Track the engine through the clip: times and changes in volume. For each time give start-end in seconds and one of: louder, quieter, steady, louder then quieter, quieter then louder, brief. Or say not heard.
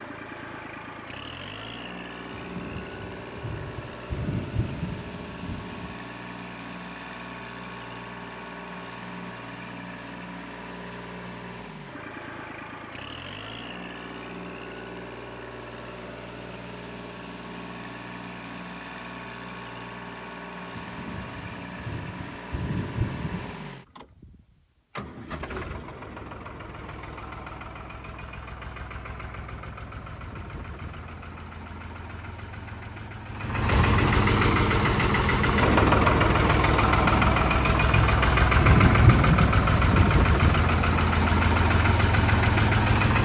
0.0-43.2 louder.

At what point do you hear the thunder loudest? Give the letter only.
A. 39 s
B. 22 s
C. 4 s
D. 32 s
A.